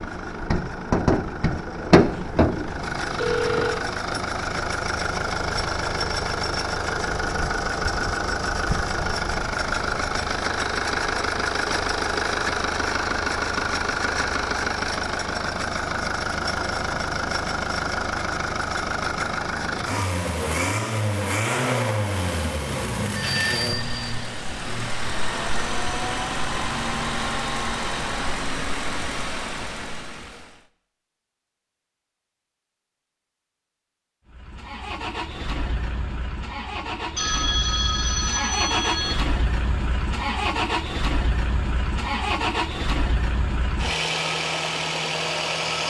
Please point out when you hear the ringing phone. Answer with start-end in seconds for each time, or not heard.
1.9-3.9, 23.1-24.1, 37.1-39.1.